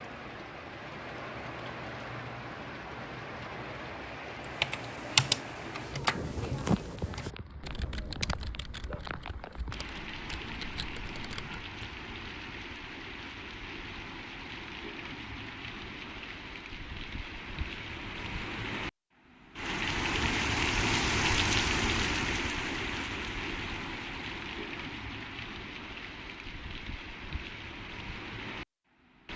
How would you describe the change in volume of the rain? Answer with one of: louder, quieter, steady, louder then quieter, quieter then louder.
louder then quieter.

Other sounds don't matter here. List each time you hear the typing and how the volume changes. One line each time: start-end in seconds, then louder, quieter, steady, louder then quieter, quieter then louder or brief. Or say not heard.
4.4-11.9 quieter then louder.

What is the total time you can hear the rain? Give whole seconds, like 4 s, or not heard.
29 s.